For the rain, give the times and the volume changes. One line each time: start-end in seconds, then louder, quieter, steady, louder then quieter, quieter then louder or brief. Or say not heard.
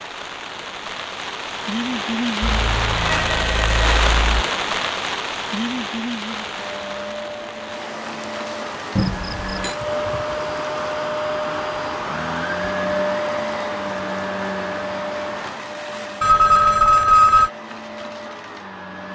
0.0-15.6 quieter.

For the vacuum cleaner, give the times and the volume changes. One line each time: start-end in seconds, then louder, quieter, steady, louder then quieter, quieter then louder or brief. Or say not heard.
6.5-19.1 louder then quieter.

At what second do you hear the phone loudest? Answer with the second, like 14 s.
17 s.